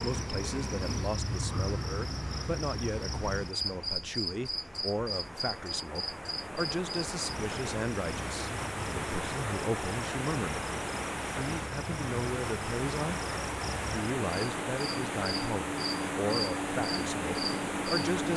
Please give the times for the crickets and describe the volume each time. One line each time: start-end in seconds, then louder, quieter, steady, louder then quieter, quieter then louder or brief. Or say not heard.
0.0-18.3 quieter then louder.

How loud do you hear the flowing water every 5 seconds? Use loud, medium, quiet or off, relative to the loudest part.
quiet, loud, loud, loud.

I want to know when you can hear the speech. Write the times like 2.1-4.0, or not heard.
0.0-10.7, 11.3-13.2, 13.8-18.3.